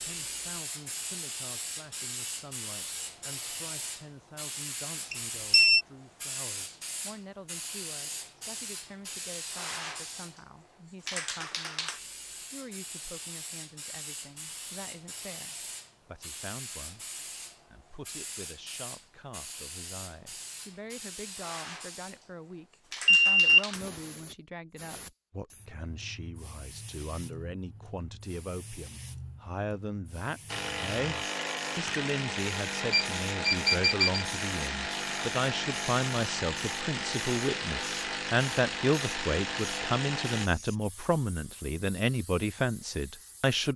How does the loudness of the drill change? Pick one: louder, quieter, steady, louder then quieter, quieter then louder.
steady.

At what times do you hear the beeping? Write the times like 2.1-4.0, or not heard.
5.1-5.8, 23.1-23.6, 32.9-34.2.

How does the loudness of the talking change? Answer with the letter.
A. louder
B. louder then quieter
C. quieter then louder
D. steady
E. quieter
A.